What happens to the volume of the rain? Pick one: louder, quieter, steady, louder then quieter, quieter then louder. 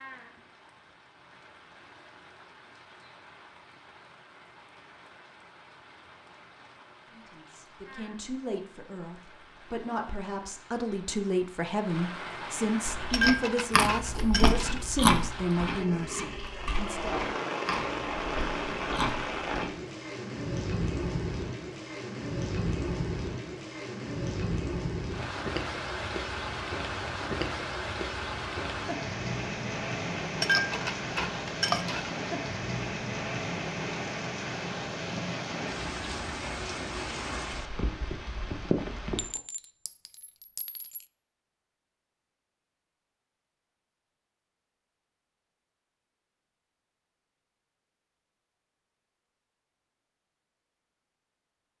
louder.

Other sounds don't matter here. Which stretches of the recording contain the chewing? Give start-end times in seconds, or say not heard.
12.8-19.7.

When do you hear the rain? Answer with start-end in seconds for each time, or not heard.
0.0-39.4.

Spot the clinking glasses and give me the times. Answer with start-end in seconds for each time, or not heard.
12.9-14.8, 30.2-32.1, 39.1-41.0.